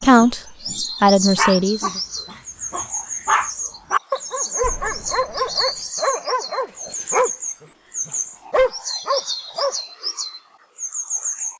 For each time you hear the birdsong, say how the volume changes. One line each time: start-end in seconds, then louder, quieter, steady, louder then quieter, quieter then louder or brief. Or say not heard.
0.0-11.5 steady.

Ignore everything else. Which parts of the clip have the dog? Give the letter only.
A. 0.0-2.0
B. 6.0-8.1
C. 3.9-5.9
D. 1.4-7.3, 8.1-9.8
D.